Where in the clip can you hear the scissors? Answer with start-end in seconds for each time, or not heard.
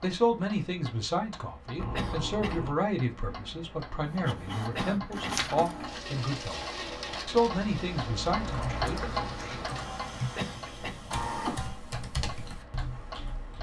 1.8-2.8, 8.7-9.7.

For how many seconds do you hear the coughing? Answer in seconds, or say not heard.
2 s.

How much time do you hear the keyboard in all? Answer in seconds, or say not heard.
5 s.